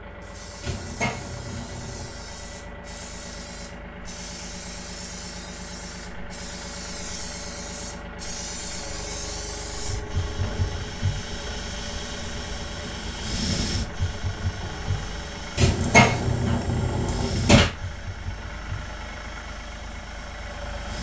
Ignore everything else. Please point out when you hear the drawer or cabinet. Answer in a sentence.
You can hear the drawer or cabinet from 0.6 to 2.2 s and from 15.6 to 17.7 s.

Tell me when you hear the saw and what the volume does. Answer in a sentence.
The saw can't be heard in this clip.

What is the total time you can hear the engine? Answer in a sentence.
The engine can be heard for 21 seconds in total.